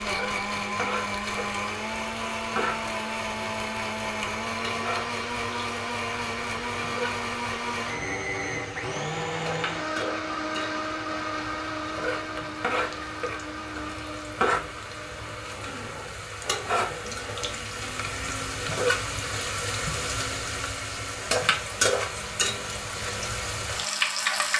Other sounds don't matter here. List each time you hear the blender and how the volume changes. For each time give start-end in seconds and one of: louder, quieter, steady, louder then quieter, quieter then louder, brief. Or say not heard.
0.0-24.5 quieter.